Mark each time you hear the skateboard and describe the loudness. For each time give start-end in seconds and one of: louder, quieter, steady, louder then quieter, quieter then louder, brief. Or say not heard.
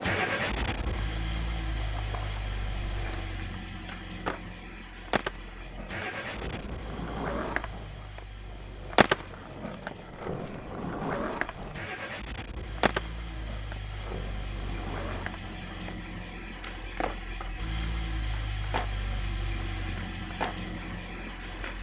0.0-21.7 louder then quieter.